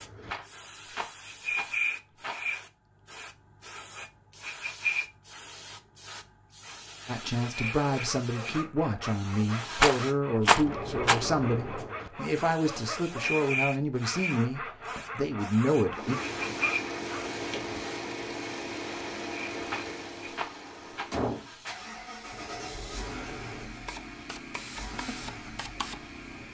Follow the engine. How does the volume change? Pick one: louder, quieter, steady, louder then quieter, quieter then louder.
quieter.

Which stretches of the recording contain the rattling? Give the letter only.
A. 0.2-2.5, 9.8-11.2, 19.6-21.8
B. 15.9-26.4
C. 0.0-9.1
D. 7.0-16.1
A.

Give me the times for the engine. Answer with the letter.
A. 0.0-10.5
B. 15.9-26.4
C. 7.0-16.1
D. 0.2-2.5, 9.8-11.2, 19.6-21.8
B.